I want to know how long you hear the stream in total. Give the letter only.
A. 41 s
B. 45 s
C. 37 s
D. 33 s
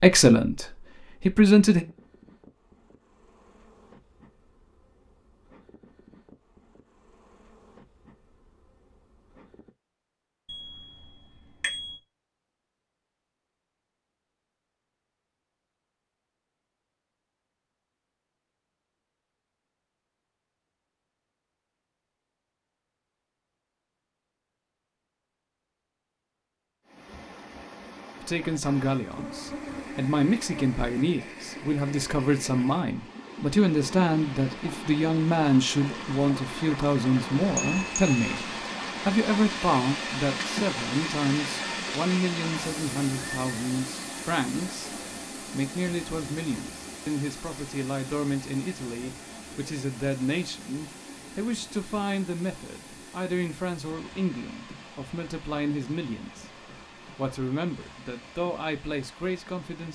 D.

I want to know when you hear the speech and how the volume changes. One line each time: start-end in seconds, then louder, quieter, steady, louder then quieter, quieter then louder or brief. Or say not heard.
0.0-1.9 brief
28.2-59.8 quieter.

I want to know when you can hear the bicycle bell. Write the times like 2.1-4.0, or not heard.
10.4-12.0, 37.6-38.4.